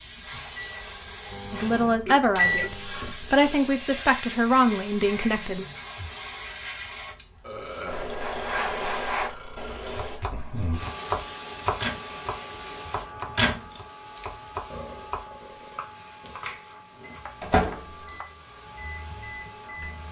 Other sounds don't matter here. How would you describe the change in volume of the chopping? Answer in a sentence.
The volume of the chopping goes down.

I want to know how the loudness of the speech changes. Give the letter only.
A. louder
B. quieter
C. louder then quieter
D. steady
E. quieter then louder
E.